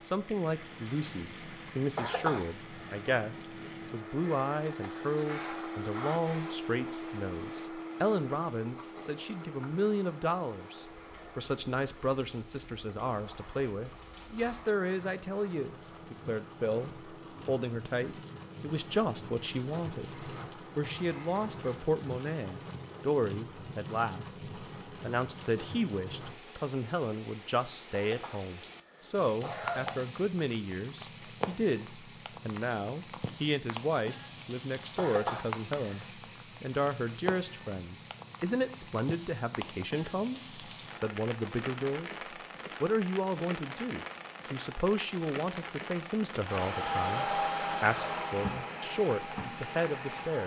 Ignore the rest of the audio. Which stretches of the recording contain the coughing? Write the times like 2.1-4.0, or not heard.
1.9-3.0, 27.9-29.9, 35.0-36.0.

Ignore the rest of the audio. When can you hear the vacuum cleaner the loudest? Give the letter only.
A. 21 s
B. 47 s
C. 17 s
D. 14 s
B.